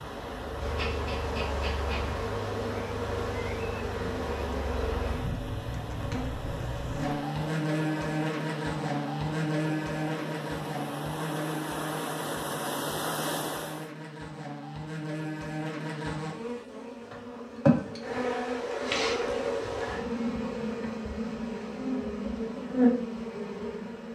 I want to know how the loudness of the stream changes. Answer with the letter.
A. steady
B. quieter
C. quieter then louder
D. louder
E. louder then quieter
D.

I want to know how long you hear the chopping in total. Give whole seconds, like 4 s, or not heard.
not heard.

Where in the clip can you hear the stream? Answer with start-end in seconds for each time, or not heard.
0.0-13.9.